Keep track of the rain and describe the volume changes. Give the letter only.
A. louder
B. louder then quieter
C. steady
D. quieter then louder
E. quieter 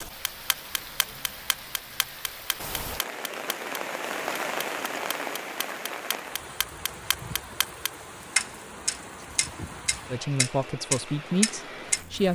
B.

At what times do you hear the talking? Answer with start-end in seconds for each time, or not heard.
10.1-12.3.